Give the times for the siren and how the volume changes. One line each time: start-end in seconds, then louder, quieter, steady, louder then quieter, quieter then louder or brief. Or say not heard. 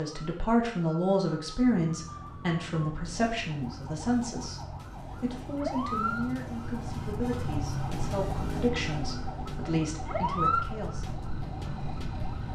0.0-12.4 louder.